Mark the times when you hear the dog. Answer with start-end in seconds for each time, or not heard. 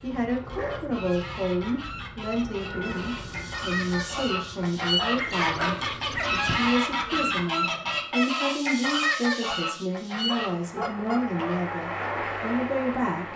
0.5-0.9, 5.2-6.7, 10.2-11.7.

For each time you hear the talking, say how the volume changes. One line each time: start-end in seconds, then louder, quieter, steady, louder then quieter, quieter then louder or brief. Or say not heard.
0.0-13.3 steady.